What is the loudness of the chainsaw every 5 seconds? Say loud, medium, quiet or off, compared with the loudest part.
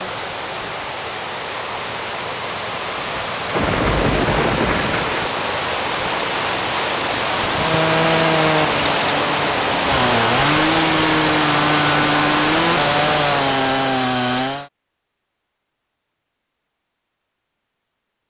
off, loud, loud, off.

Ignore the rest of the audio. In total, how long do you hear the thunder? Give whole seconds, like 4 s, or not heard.
2 s.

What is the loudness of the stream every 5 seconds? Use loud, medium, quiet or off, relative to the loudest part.
medium, loud, loud, off.